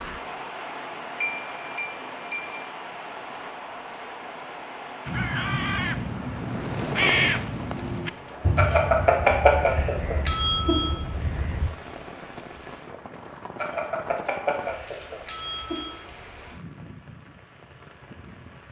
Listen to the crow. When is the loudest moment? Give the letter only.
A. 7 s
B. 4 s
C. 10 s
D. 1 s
A.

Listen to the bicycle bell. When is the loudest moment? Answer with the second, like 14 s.
9 s.